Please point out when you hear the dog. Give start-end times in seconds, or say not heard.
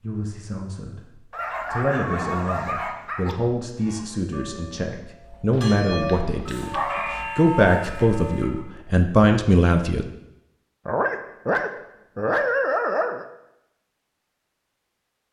1.3-3.4, 5.5-7.2, 10.8-13.2.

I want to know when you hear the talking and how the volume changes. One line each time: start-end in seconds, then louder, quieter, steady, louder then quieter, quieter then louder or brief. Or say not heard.
0.0-10.1 louder.